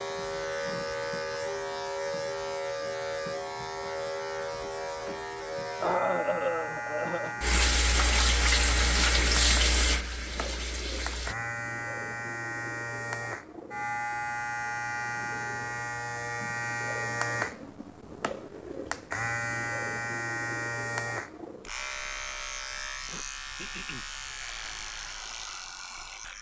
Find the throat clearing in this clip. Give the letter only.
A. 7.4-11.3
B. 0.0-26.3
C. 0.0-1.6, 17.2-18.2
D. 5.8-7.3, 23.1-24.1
D.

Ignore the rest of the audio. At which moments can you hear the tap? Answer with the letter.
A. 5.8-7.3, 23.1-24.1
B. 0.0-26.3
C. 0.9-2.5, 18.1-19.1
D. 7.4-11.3
D.